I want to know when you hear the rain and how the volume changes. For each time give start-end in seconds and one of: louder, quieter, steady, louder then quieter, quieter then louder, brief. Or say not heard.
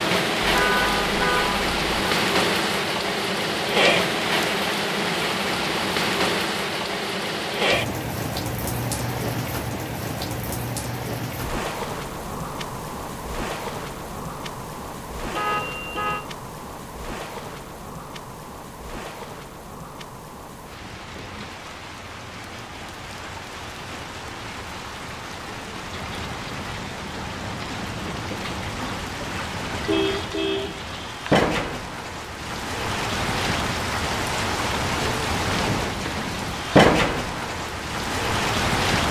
0.0-39.0 quieter then louder.